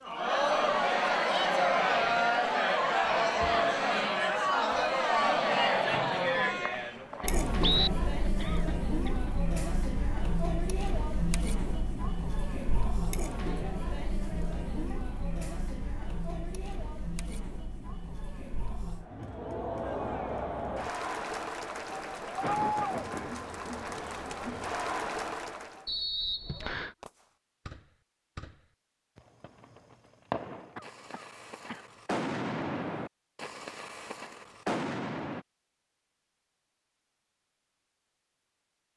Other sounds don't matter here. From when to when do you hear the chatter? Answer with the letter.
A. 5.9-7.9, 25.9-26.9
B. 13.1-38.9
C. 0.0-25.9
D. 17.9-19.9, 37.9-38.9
C.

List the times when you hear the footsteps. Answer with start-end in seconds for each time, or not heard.
not heard.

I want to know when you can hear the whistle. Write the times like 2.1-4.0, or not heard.
5.9-7.9, 25.9-26.9.